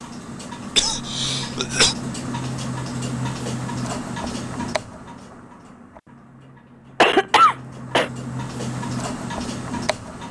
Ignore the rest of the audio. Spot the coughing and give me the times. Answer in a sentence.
You can hear the coughing from 0.8 to 1.9 s and from 7.0 to 8.1 s.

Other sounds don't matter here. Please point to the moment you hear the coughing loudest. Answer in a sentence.
The volume of the coughing peaks at 7 seconds.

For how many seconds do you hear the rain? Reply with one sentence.
You can't hear the rain here.